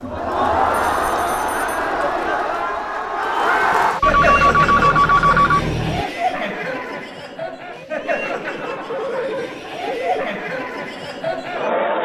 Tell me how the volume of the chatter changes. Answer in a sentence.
The loudness of the chatter goes down.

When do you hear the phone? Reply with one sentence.
The phone can be heard from 0.7 to 1.7 s, from 4.0 to 6.0 s and from 8.9 to 10.2 s.